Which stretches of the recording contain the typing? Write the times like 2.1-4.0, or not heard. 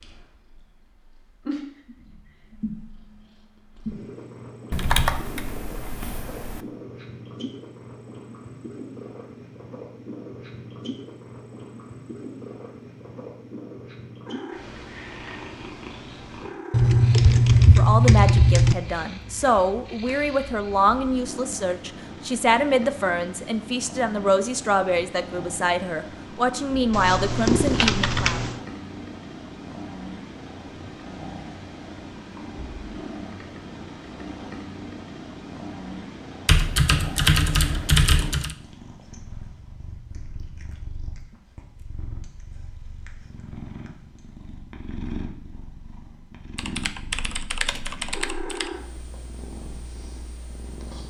4.7-6.6, 16.7-18.8, 26.9-28.6, 36.5-38.5, 46.5-48.7.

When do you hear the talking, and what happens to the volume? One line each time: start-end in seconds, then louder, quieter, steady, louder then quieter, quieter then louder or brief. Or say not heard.
17.8-28.4 steady.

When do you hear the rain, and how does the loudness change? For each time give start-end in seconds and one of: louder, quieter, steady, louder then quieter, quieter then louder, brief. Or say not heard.
not heard.